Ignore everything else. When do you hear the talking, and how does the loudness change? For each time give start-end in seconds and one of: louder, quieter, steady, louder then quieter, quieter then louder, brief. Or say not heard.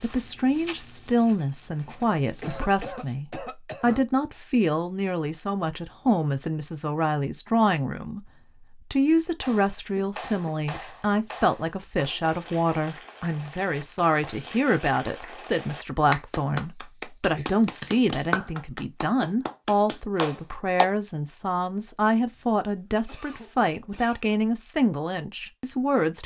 0.0-26.2 steady.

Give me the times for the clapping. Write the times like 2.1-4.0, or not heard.
9.4-20.9.